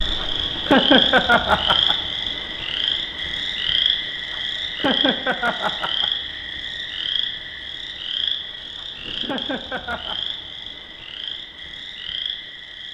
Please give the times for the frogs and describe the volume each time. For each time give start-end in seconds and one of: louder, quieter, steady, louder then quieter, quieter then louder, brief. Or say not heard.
0.0-12.9 quieter.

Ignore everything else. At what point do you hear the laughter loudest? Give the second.
1 s.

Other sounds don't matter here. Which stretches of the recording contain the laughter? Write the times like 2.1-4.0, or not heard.
0.2-1.9, 4.3-6.1, 8.8-10.2.